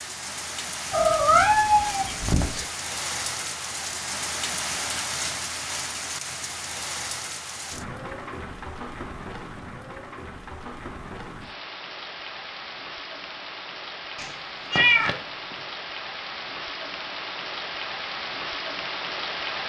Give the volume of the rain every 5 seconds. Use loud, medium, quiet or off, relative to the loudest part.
loud, loud, medium, loud.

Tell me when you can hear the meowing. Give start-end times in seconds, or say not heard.
0.9-2.6, 14.2-15.2.